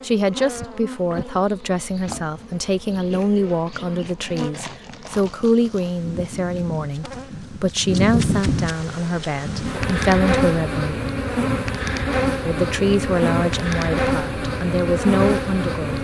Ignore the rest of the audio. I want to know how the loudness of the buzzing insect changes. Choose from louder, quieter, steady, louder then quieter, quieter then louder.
louder.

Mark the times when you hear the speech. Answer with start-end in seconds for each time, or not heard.
0.0-11.0, 12.4-15.9.